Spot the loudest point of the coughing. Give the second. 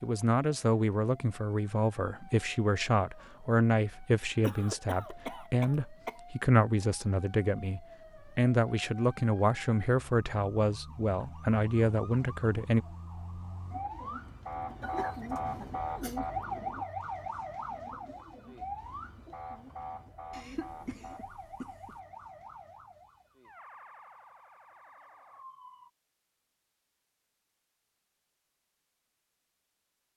5 s.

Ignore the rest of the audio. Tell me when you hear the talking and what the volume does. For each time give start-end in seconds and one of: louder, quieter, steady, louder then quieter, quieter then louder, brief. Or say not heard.
0.0-12.8 steady.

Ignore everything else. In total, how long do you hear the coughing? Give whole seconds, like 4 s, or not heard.
5 s.